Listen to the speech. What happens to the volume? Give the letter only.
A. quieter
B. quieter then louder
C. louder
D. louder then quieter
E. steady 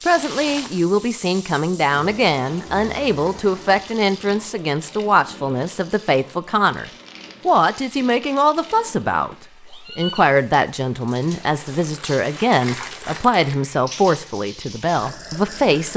E.